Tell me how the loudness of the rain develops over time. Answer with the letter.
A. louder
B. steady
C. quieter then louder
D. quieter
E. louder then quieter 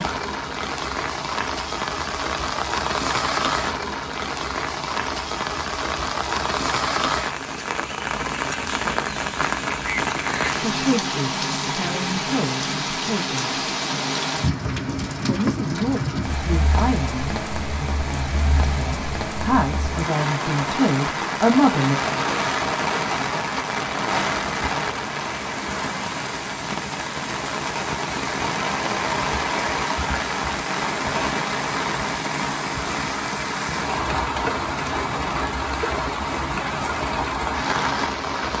B.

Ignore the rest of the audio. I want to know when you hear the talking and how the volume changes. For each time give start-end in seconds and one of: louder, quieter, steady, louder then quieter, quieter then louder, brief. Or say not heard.
10.6-13.6 brief
15.2-21.9 quieter then louder.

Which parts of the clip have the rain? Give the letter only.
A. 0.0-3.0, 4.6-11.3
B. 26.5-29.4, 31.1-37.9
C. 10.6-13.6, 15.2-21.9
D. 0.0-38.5
D.